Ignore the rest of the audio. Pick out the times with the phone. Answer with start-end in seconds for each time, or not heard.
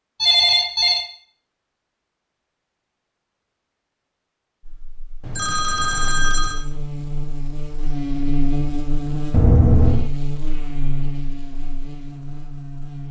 0.2-1.1, 5.2-6.7, 9.3-10.1.